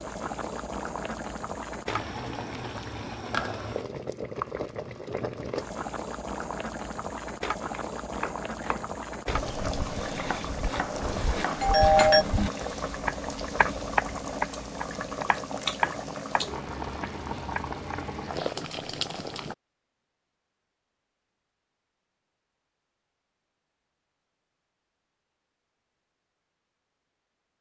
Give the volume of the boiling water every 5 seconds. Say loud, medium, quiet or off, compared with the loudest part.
loud, loud, loud, loud, off, off.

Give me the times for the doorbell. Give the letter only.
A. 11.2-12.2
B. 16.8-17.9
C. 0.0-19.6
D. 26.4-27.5
A.